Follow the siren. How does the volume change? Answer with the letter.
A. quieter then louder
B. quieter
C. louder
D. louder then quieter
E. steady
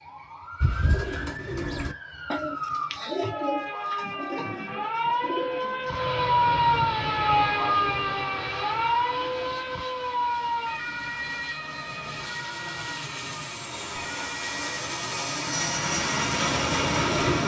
D.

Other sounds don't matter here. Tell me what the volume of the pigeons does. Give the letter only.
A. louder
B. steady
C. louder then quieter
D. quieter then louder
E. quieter
E.